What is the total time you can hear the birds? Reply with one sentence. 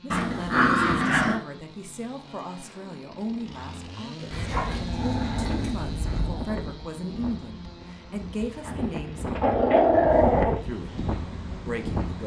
You can't hear the birds here.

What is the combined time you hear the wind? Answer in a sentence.
The wind can be heard for 7 seconds in total.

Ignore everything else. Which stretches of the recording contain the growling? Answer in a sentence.
The growling can be heard from 0.1 to 1.4 s, from 4.3 to 6.4 s and from 8.7 to 10.6 s.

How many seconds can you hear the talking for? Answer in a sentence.
The talking can be heard for 11 seconds in total.